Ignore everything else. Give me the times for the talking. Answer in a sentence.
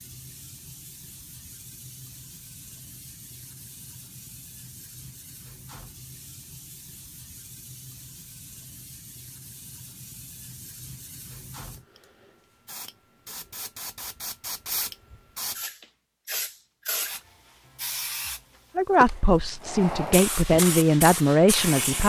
You can hear the talking from 18.8 to 22.0 s.